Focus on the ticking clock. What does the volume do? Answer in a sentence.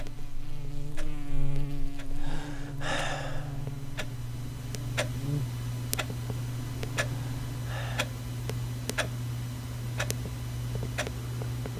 The loudness of the ticking clock goes up.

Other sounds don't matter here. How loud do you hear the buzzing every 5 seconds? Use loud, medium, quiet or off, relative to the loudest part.
loud, loud, off.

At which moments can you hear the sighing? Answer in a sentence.
You can hear the sighing from 2.1 to 3.6 s and from 7.0 to 8.1 s.